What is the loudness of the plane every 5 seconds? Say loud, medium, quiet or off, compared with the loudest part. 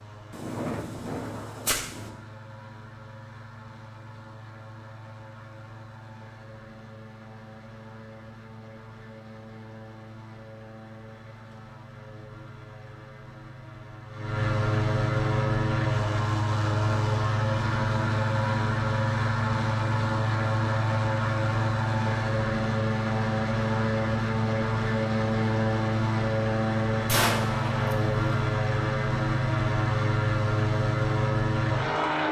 quiet, quiet, medium, loud, loud, loud, loud.